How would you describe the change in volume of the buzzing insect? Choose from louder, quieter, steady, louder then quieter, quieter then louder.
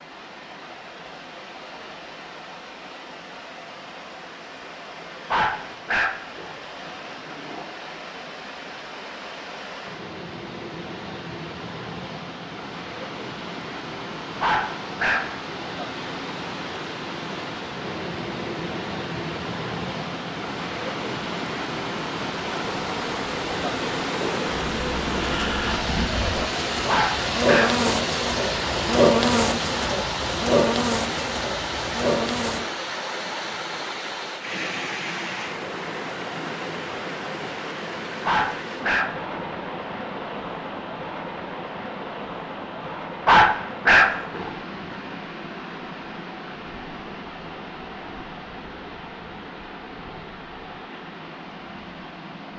louder.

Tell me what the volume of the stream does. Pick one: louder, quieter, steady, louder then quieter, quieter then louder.
louder then quieter.